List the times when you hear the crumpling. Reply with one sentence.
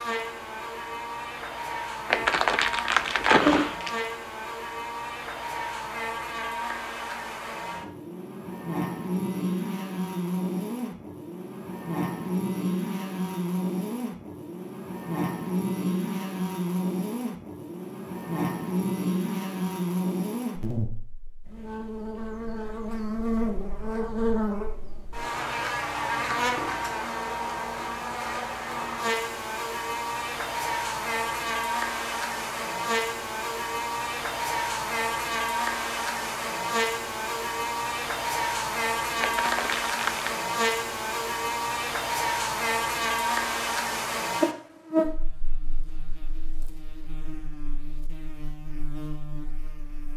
The crumpling can be heard from 2.1 to 4.0 s and from 39.2 to 40.4 s.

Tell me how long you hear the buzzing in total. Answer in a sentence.
The buzzing can be heard for 50 seconds in total.